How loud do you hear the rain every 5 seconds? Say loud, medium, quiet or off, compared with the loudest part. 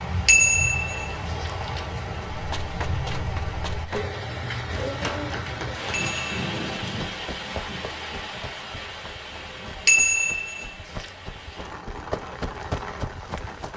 loud, loud, medium.